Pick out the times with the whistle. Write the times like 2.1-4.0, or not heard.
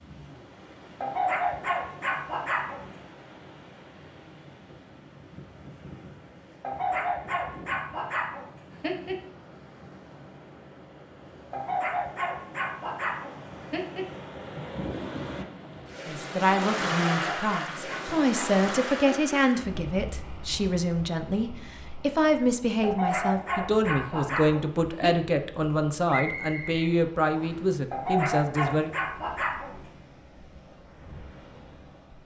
26.1-27.7.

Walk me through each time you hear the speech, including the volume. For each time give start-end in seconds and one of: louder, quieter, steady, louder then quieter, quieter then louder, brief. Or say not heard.
16.1-28.9 steady.